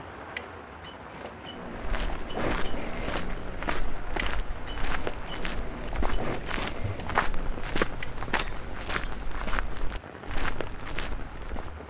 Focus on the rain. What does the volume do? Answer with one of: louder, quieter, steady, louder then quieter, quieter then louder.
steady.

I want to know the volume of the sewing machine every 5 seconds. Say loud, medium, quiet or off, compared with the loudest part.
loud, loud, off.